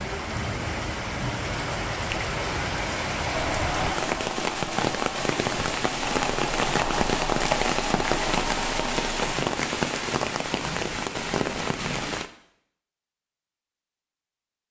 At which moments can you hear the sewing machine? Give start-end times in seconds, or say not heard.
3.3-9.3.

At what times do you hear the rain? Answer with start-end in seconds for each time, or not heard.
0.0-12.3.